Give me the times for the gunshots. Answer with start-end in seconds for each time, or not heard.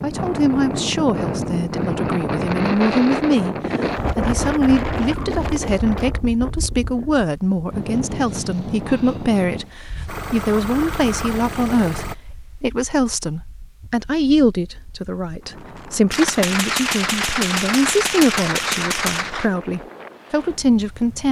16.1-19.5.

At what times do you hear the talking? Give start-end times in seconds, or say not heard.
0.0-3.5, 4.2-21.2.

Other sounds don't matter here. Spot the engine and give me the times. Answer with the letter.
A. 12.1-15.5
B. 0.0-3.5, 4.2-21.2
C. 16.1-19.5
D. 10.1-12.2
D.